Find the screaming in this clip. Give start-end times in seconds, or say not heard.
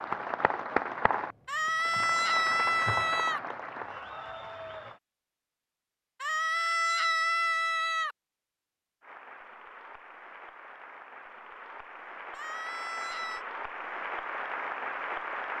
1.4-3.4, 6.2-8.2, 12.3-13.4.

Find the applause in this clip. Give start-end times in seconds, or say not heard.
0.0-5.0, 9.0-15.5.